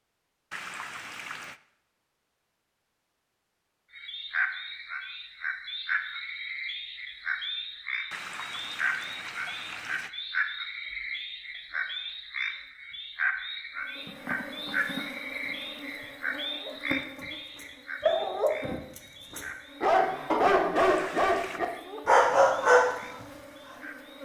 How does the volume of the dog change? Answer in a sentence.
The loudness of the dog goes up.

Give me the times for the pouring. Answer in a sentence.
You can hear the pouring from 0.5 to 1.6 s, from 8.1 to 10.1 s and from 20.8 to 21.6 s.